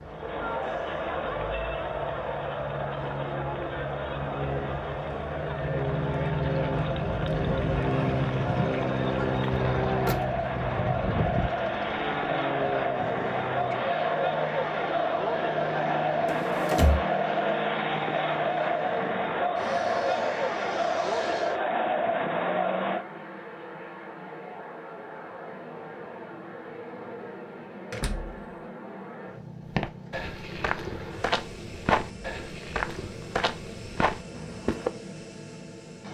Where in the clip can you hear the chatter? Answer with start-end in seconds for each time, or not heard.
0.0-23.1.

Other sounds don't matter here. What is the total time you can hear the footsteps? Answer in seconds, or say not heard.
5 s.